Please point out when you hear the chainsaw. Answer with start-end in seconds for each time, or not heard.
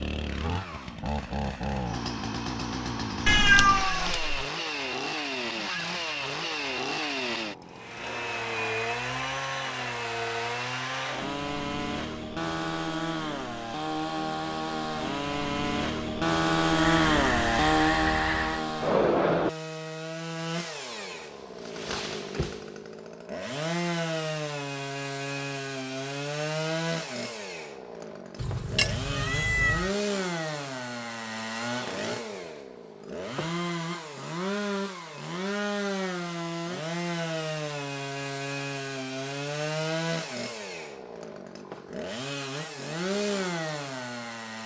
0.0-44.6.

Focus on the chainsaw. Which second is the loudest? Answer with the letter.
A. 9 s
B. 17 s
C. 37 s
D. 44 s
B.